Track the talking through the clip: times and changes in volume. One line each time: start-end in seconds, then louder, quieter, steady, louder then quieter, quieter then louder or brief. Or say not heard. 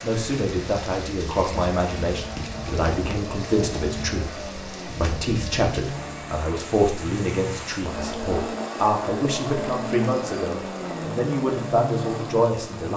0.0-12.9 steady.